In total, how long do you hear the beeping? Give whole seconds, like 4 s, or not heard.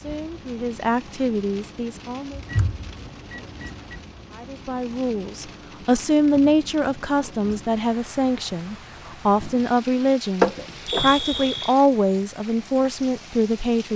3 s.